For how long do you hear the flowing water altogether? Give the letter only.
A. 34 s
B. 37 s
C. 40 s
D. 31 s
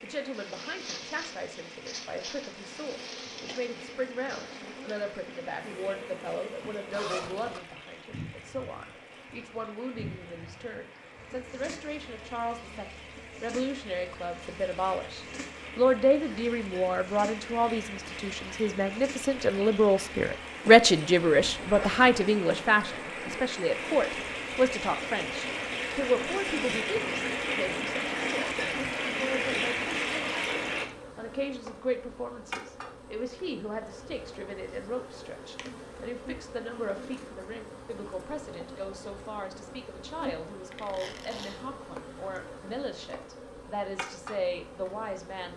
D.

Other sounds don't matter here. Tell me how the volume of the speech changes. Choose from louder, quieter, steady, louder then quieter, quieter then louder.
louder then quieter.